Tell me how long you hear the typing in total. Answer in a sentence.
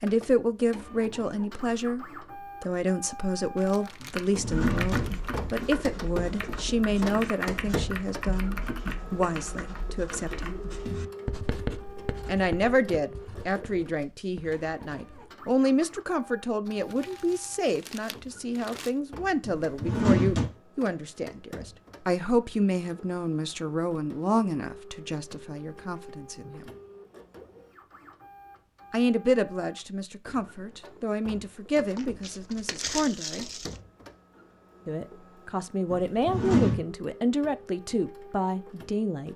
You can hear the typing for 8 seconds altogether.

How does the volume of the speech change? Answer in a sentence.
The volume of the speech stays about the same.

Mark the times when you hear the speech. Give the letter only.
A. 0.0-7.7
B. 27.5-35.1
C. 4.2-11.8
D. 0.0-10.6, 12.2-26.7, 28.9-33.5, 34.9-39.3
D.